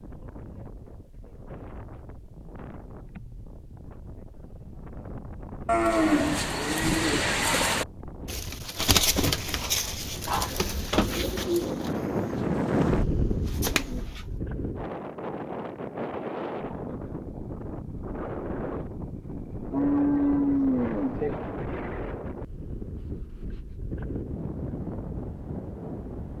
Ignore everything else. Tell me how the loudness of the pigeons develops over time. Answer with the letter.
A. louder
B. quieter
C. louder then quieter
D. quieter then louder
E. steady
B.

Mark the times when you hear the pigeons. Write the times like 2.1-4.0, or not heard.
5.8-14.2.